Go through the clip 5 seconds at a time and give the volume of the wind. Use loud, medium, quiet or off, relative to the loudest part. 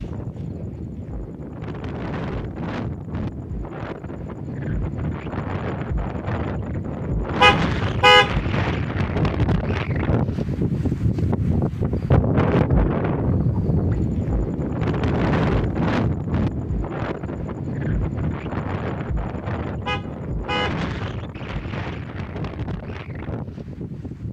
medium, loud, loud, loud, medium.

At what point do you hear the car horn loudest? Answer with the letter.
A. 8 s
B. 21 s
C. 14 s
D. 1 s
A.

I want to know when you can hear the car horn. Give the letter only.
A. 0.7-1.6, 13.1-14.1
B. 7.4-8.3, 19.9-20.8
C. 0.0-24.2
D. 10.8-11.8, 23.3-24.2
B.